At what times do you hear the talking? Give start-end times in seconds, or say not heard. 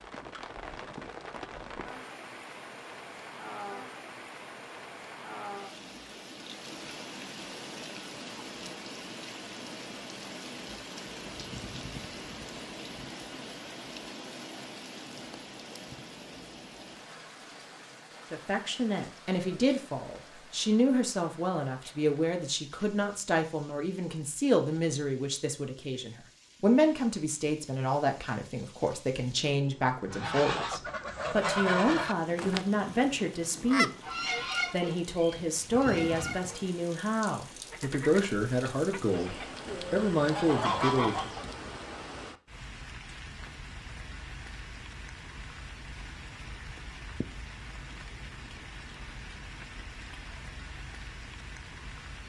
18.3-33.9, 34.7-41.3.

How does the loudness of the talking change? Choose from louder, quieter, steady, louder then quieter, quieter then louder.
steady.